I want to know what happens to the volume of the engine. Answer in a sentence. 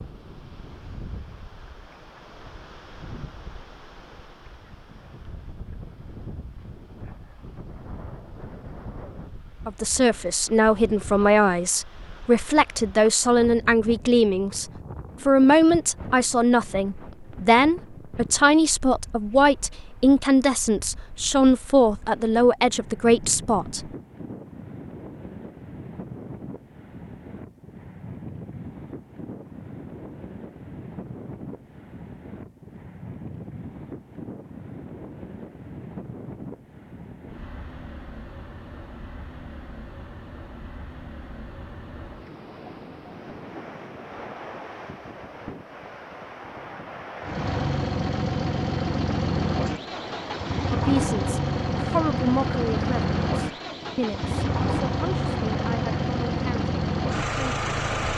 The loudness of the engine stays about the same.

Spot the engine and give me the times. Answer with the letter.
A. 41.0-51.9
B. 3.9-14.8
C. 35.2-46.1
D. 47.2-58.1
D.